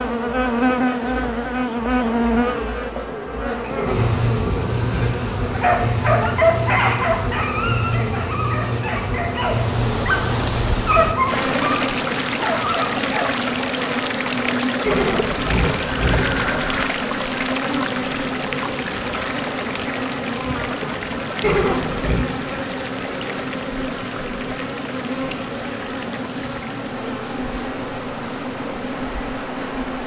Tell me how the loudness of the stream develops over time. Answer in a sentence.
The loudness of the stream goes down.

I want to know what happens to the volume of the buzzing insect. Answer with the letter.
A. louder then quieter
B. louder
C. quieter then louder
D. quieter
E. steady
D.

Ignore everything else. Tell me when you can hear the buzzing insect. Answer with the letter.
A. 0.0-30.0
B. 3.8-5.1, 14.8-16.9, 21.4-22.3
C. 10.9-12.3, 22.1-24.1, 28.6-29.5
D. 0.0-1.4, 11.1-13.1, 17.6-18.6
A.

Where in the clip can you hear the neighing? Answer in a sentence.
The neighing can be heard from 3.8 to 5.1 s, from 14.8 to 16.9 s and from 21.4 to 22.3 s.